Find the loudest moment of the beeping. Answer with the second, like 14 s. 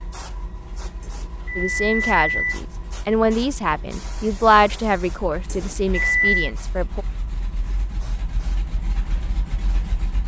6 s.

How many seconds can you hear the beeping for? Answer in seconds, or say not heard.
3 s.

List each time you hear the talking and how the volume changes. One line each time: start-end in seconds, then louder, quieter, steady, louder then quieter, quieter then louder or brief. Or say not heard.
1.6-7.0 louder then quieter.